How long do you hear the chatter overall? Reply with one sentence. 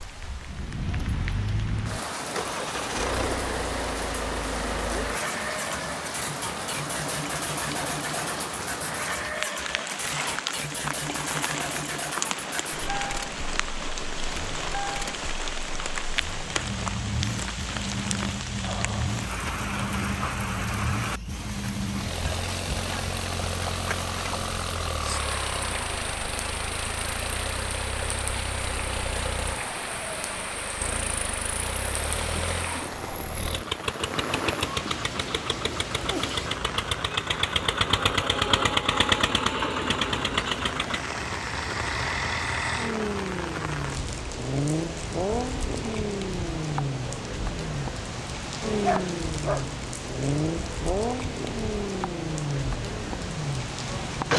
You can't hear the chatter here.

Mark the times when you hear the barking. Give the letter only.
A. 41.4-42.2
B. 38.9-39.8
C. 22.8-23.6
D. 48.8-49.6
D.